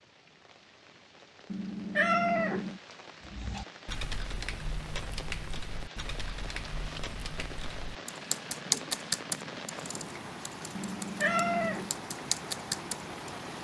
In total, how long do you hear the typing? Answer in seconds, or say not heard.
10 s.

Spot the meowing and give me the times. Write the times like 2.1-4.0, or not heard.
1.5-2.8, 10.8-11.9.